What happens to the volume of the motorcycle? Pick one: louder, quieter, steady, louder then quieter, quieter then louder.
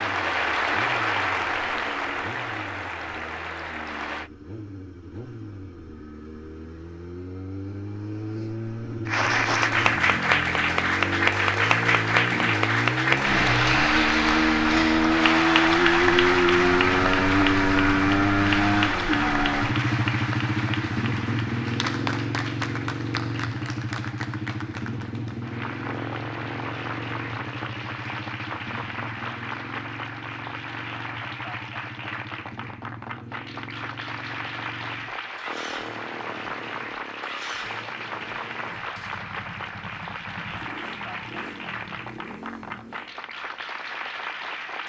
louder then quieter.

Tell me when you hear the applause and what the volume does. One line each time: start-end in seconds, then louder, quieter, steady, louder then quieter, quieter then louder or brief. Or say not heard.
0.0-4.3 quieter
9.1-44.8 quieter.